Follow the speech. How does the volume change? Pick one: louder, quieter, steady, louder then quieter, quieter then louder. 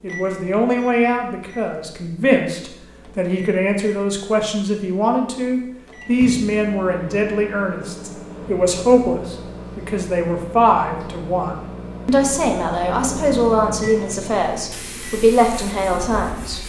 steady.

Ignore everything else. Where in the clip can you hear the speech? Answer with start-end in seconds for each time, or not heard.
0.0-16.6.